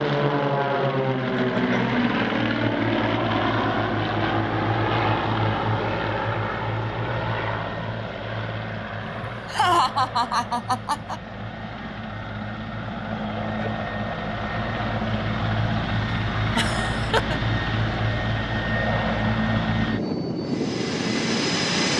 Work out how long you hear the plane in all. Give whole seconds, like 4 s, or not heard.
22 s.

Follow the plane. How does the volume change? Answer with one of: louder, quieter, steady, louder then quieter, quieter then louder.
quieter then louder.